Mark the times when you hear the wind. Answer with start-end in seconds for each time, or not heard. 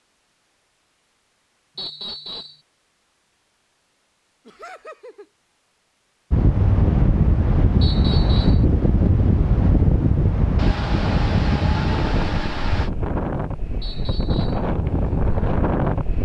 6.3-16.1.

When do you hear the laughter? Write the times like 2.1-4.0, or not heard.
4.5-5.3, 10.6-12.9.